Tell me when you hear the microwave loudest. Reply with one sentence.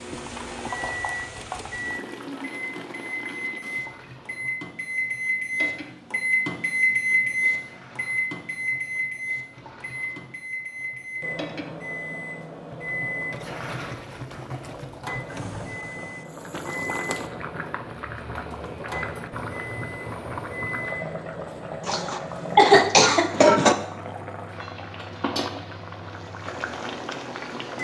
The volume of the microwave peaks at 7 seconds.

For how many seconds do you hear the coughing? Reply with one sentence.
The coughing can be heard for 2 seconds in total.